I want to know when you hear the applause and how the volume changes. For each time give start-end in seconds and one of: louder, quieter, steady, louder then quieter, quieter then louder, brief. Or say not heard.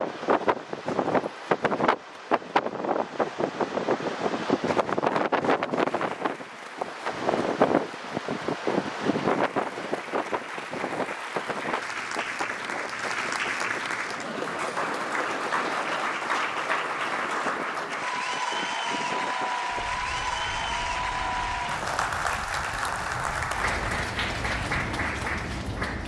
5.8-26.0 louder.